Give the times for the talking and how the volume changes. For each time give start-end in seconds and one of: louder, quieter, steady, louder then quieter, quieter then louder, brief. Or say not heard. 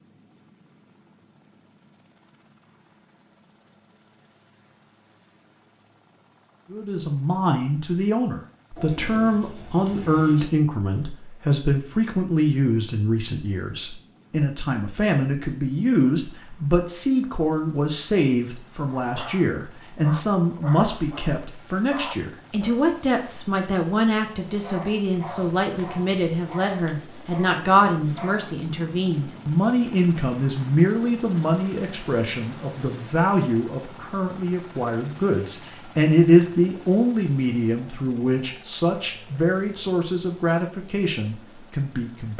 6.7-42.3 steady.